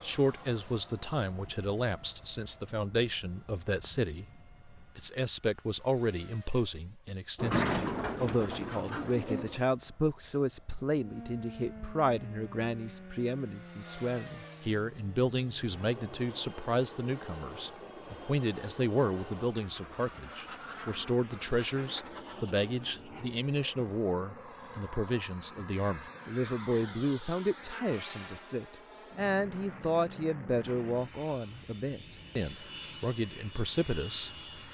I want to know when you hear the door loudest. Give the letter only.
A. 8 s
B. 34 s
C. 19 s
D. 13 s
A.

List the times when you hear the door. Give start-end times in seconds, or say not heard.
7.3-9.6.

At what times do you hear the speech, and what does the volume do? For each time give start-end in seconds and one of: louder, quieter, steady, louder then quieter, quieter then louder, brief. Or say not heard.
0.0-34.3 steady.